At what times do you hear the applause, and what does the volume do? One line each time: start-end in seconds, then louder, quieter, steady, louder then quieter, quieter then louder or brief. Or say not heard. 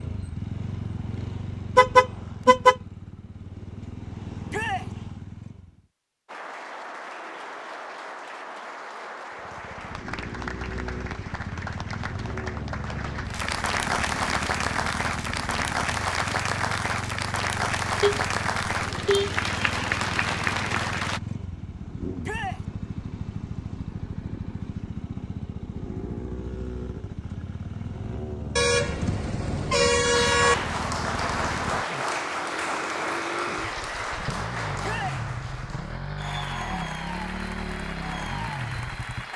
6.2-21.2 louder
30.1-39.3 quieter.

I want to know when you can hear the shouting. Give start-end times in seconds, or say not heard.
4.5-4.9, 22.2-22.6, 34.8-35.2.